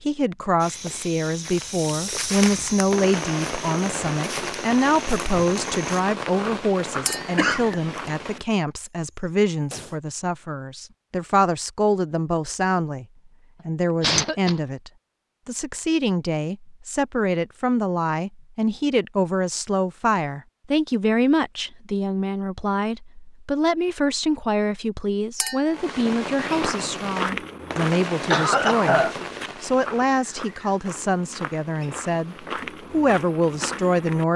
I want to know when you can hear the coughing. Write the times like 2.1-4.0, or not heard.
7.3-8.1, 14.0-14.6, 28.3-29.1.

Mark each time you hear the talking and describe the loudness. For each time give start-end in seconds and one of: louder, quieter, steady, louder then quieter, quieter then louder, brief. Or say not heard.
0.0-13.1 steady
13.7-34.3 steady.